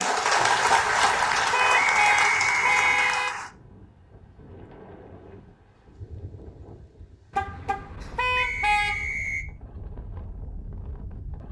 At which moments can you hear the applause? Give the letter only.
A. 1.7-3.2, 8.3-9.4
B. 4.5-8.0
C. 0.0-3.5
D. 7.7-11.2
C.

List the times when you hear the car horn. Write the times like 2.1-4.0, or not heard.
0.7-3.4, 7.3-9.1.